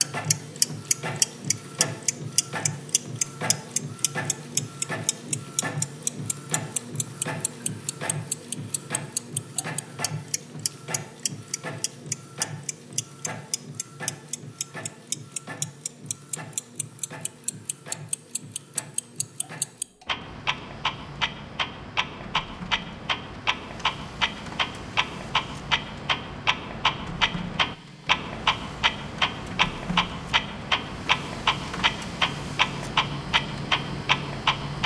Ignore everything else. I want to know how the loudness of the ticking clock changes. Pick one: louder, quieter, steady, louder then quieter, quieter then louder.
quieter then louder.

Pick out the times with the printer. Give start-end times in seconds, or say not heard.
0.0-34.8.